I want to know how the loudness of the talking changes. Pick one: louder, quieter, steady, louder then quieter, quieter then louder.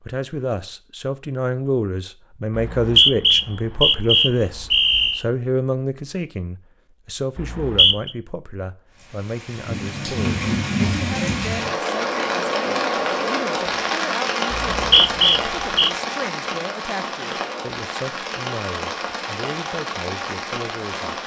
quieter.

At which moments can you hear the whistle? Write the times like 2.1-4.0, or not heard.
2.5-5.2, 7.3-8.1, 14.5-15.9.